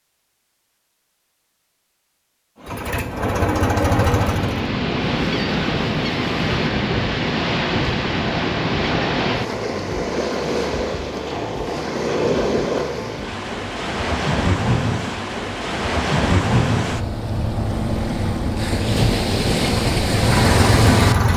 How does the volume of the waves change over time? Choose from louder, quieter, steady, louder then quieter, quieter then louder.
steady.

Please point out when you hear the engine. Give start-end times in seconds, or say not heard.
2.6-4.7, 19.6-21.3.